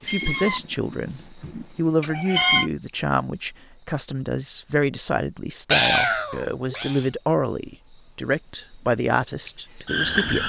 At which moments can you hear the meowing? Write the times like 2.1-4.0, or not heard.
0.1-2.7, 5.7-7.0.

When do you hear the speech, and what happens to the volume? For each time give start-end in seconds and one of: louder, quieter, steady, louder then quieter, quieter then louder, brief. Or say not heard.
0.0-10.4 steady.